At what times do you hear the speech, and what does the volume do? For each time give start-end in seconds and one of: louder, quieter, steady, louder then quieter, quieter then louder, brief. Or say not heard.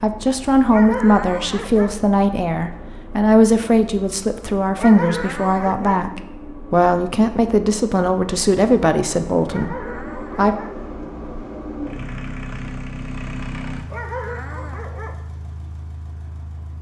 0.0-10.6 steady.